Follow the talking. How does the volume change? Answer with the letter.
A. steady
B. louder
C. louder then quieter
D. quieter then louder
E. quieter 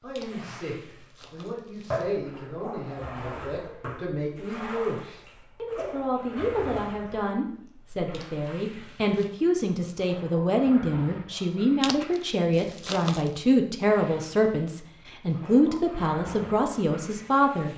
B.